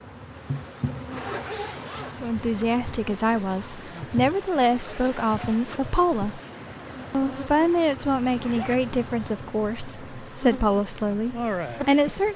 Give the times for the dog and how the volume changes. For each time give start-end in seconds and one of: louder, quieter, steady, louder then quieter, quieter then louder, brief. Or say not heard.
not heard.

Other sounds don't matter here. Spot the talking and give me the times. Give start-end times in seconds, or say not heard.
2.2-6.4, 7.1-12.3.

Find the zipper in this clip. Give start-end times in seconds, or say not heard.
0.9-2.2, 4.8-5.6, 8.3-8.8.